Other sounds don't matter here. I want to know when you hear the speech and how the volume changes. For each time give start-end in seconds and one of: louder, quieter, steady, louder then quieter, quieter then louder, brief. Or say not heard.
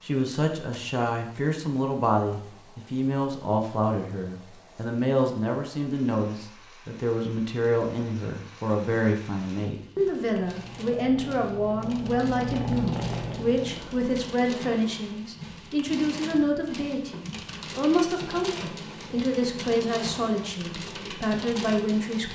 0.0-22.3 steady.